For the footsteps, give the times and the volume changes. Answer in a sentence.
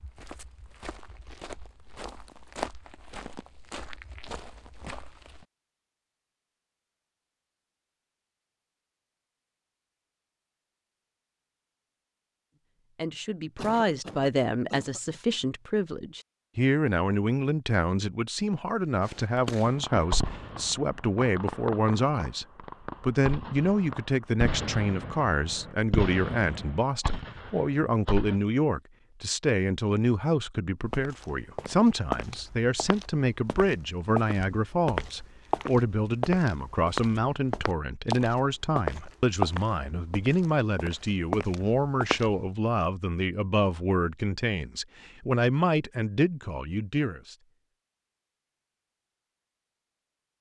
You can hear the footsteps from 0.0 to 5.5 s, getting louder then quieter; and from 30.9 to 42.5 s, getting louder then quieter.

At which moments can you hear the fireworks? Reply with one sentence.
You can hear the fireworks from 19.1 to 28.4 s.